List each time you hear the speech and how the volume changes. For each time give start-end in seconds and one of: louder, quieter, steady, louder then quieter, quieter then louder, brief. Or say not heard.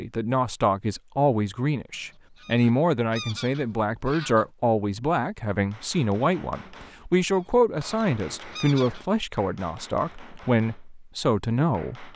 0.0-12.1 steady.